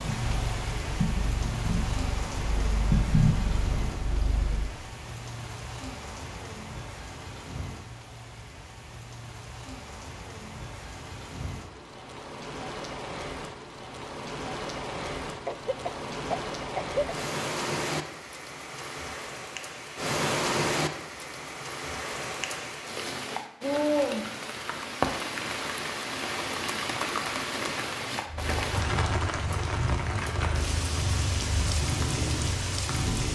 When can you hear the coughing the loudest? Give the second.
17 s.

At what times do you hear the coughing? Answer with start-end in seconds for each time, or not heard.
15.4-17.1.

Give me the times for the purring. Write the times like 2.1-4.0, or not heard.
0.0-4.8, 28.2-33.2.